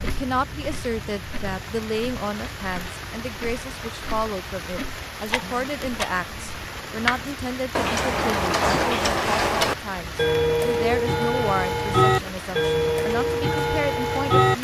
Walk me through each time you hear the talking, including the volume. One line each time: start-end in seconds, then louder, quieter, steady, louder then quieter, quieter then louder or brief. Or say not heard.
0.0-14.5 steady.